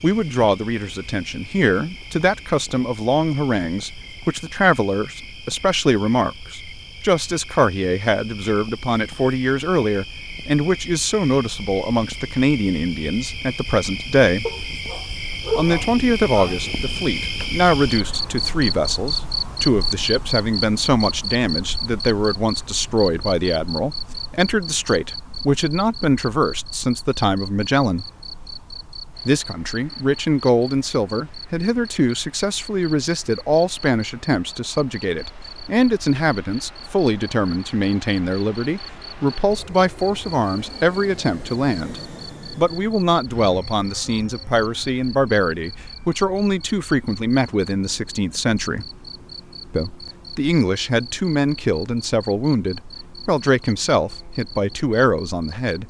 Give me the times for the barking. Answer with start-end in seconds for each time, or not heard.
14.4-16.8.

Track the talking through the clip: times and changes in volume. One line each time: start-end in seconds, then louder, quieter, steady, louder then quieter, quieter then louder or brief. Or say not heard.
0.0-14.4 steady
15.6-28.1 steady
29.2-48.9 steady
49.7-55.8 steady.